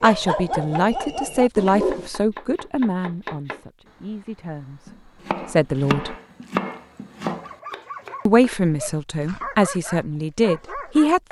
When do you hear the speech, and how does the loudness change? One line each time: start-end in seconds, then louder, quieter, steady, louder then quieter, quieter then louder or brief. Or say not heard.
0.0-6.2 quieter then louder
8.2-11.2 brief.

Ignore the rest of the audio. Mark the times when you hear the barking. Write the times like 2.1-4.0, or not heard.
0.0-2.1, 7.2-11.2.